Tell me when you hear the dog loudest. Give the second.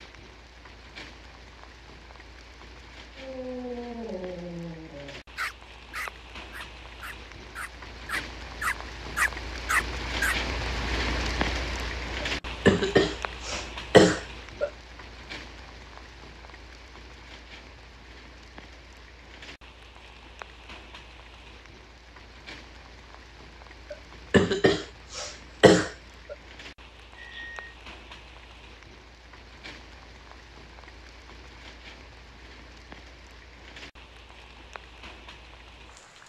10 s.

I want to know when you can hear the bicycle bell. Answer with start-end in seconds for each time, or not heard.
27.1-27.7.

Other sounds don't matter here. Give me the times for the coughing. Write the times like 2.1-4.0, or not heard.
12.2-14.7, 23.9-26.4.